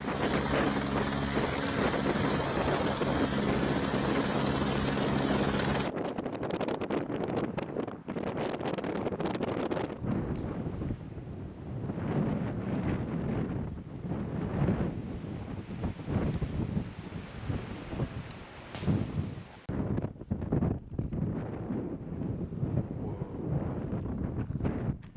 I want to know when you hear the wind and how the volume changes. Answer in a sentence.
You can hear the wind from 0.0 to 25.1 s, at a steady volume.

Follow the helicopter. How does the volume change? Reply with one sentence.
The loudness of the helicopter stays about the same.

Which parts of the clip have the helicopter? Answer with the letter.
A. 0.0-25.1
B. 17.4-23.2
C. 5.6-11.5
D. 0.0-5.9
D.